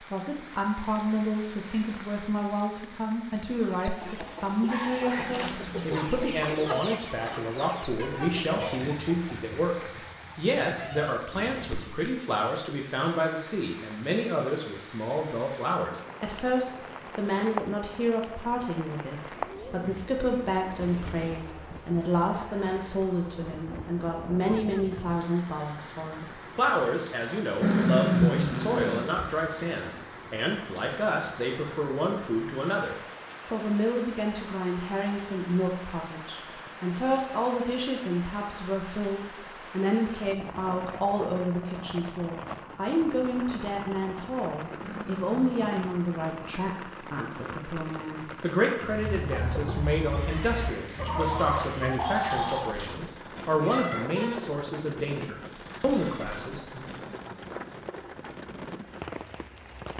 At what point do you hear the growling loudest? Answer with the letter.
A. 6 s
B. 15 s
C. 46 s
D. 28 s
D.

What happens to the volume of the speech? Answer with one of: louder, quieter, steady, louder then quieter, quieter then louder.
steady.